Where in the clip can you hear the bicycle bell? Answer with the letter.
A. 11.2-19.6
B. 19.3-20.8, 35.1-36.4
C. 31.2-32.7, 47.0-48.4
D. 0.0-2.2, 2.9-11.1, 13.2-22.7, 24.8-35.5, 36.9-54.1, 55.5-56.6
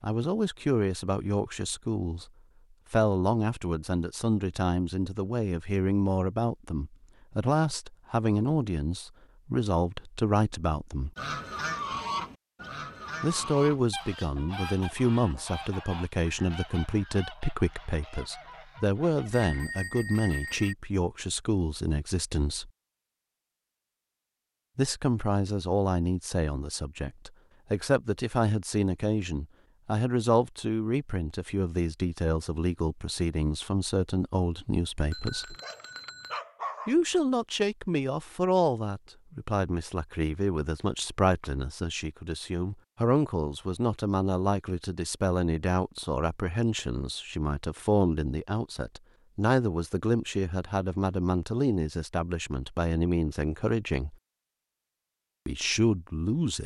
B.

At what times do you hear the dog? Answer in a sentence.
The dog can be heard from 35.5 to 37.0 s.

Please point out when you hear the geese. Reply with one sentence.
You can hear the geese from 11.2 to 19.6 s.